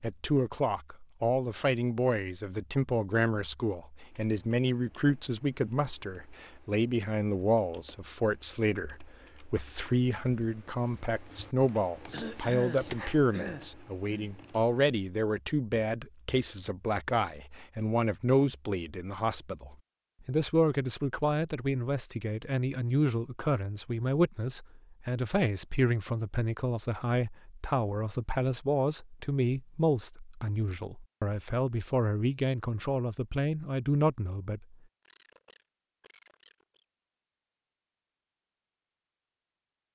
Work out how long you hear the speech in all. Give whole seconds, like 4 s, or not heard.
35 s.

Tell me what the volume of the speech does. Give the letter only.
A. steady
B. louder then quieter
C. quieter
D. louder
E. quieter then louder
A.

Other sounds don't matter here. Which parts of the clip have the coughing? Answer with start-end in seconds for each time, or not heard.
12.1-14.3, 35.0-36.9.